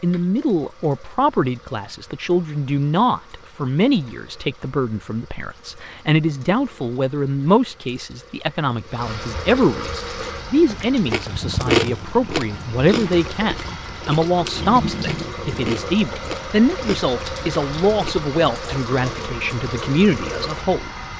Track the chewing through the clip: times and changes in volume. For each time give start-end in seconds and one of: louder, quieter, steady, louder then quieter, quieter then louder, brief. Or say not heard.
10.1-18.2 quieter.